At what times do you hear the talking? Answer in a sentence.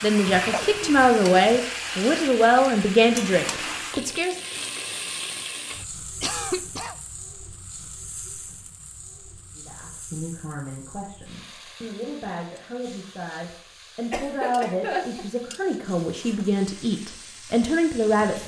You can hear the talking from 0.0 to 4.3 s and from 9.6 to 18.4 s.